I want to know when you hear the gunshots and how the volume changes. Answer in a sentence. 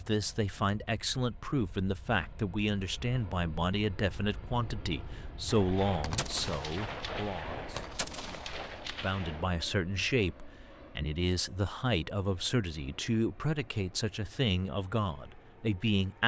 The gunshots can be heard from 5.5 to 9.5 s, at a steady volume.